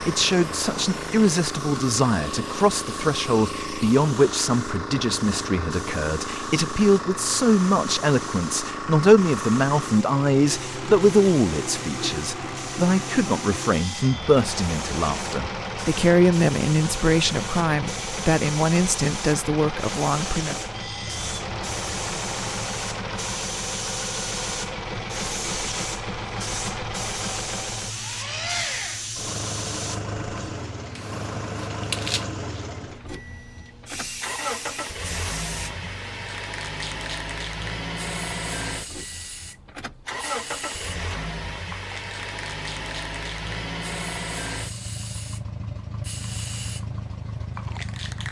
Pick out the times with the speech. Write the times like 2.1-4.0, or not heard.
0.0-20.6.